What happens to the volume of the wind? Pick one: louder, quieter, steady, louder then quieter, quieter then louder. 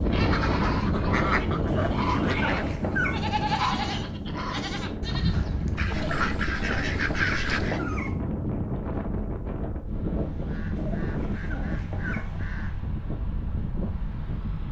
quieter.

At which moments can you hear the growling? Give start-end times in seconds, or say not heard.
1.6-3.4, 5.9-8.2, 10.8-12.5.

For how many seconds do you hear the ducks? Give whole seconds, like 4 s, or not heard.
7 s.